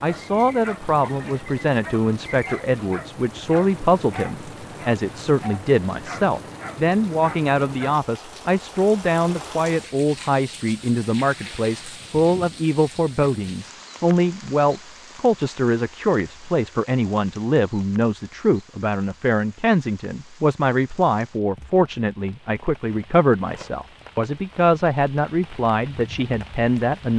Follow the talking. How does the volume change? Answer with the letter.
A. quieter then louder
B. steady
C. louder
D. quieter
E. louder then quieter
B.